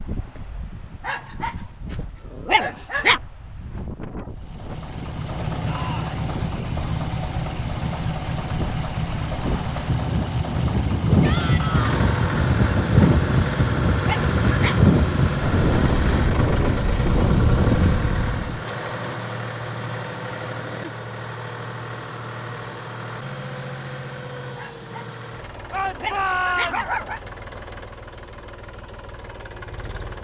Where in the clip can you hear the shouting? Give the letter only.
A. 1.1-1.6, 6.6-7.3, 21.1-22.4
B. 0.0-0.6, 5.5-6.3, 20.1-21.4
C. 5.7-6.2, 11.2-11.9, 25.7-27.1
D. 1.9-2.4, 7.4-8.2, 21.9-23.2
C.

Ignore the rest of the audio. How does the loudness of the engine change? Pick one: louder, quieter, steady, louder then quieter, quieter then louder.
quieter.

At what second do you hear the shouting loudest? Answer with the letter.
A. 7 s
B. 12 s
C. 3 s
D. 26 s
D.